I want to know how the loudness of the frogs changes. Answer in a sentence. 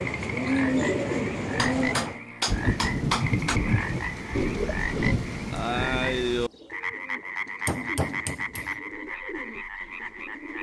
The volume of the frogs stays about the same.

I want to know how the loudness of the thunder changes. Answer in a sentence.
The loudness of the thunder goes down, then up.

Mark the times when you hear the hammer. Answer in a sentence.
You can hear the hammer from 1.6 to 3.6 s and from 7.7 to 8.8 s.